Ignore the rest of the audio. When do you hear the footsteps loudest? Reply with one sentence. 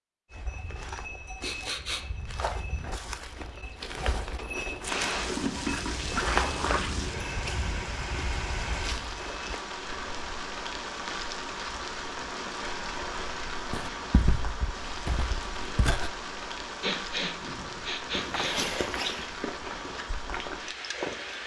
The volume of the footsteps peaks at 6 seconds.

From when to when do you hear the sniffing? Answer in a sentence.
You can hear the sniffing from 1.4 to 2.0 s and from 16.8 to 18.6 s.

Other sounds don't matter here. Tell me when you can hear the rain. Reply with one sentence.
The rain can be heard from 4.8 to 21.4 s.